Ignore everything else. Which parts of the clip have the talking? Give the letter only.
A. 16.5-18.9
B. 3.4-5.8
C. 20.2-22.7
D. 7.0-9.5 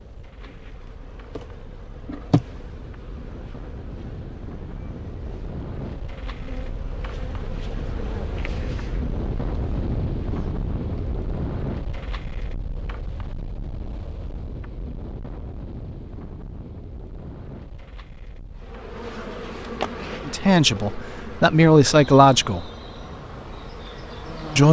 C.